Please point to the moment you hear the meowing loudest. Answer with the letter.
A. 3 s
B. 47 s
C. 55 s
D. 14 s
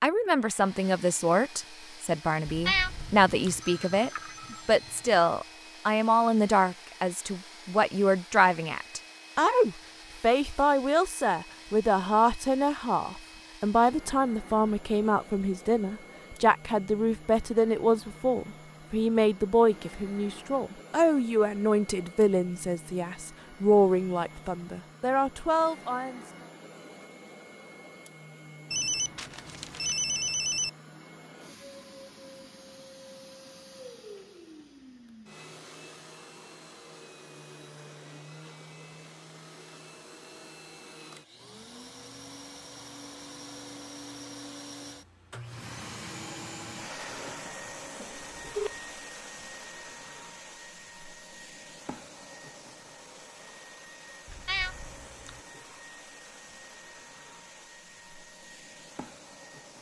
A.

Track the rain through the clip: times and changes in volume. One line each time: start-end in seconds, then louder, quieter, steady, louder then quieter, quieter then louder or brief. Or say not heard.
not heard.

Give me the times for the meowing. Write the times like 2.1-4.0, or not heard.
2.5-3.6, 54.2-55.4.